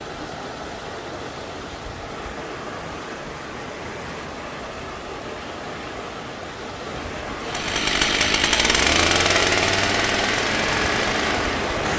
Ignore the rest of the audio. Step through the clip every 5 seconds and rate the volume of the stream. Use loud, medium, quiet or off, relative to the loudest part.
medium, medium, loud.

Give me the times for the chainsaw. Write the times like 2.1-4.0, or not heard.
7.4-11.7.